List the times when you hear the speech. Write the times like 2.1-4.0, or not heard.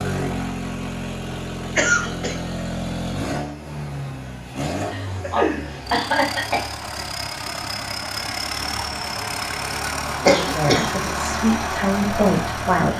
10.2-12.9.